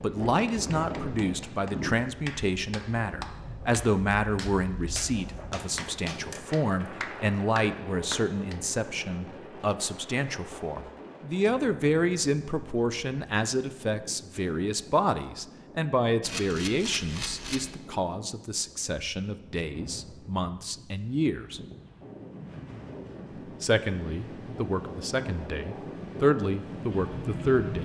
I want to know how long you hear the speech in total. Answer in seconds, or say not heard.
26 s.